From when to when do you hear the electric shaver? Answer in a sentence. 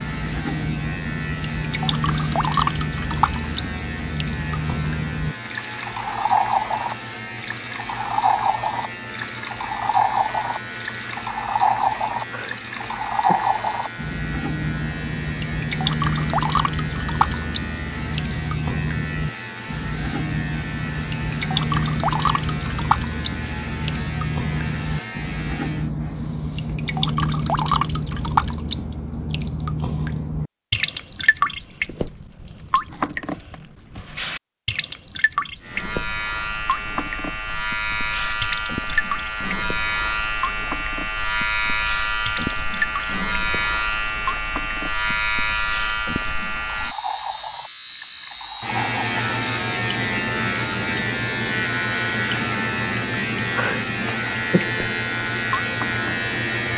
The electric shaver can be heard from 0.0 to 25.9 s and from 35.6 to 56.7 s.